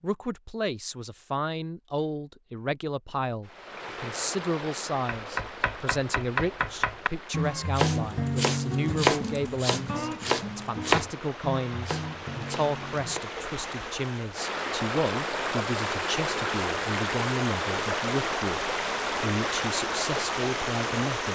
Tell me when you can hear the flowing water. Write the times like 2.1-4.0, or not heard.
3.5-21.3.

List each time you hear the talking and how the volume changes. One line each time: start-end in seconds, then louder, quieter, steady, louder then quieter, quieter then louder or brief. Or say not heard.
0.0-21.3 steady.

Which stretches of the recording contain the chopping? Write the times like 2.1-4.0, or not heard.
5.0-13.3.